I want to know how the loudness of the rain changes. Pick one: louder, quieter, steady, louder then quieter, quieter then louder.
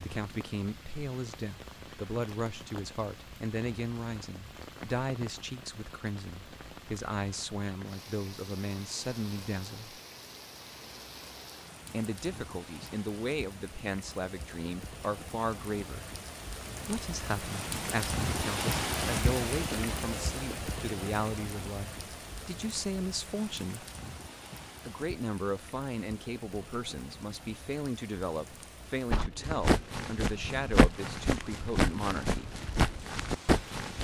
louder then quieter.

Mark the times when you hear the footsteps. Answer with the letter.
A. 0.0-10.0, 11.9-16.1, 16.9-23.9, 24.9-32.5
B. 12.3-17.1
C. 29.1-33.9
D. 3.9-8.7
C.